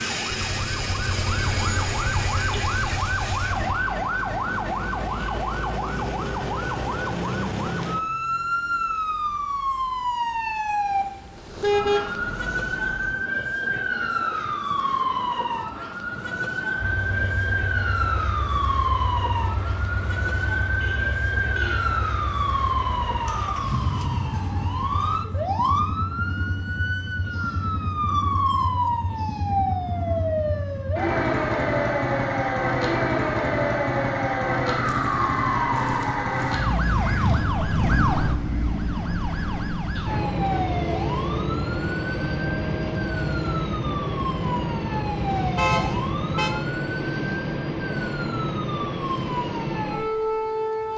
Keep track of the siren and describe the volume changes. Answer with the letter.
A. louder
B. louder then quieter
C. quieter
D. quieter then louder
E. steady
E.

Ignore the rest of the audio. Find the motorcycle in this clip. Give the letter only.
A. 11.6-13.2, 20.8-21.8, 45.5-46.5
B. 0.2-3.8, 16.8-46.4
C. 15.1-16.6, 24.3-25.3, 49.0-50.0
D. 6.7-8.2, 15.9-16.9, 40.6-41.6
B.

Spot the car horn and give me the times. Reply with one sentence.
You can hear the car horn from 11.6 to 13.2 s, from 20.8 to 21.8 s and from 45.5 to 46.5 s.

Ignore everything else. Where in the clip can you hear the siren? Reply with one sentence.
The siren can be heard from 0.0 to 50.9 s.